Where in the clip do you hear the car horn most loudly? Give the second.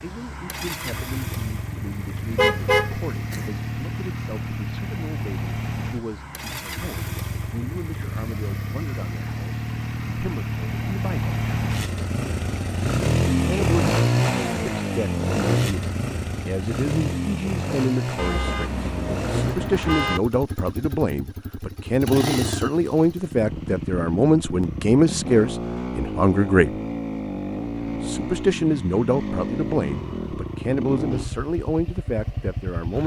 3 s.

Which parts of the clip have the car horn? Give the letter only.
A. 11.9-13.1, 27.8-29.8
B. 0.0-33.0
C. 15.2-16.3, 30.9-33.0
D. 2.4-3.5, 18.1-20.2
D.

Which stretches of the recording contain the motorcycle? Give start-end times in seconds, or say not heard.
0.0-33.0.